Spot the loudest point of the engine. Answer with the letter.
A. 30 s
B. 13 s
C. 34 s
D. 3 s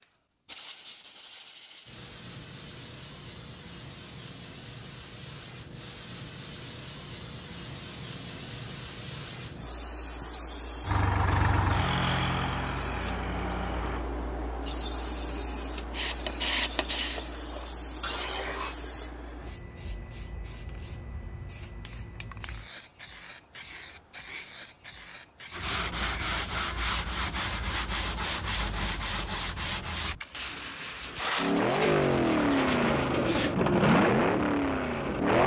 C.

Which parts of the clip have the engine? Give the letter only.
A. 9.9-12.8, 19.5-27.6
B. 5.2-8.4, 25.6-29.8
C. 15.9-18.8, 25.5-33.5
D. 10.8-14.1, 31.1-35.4
D.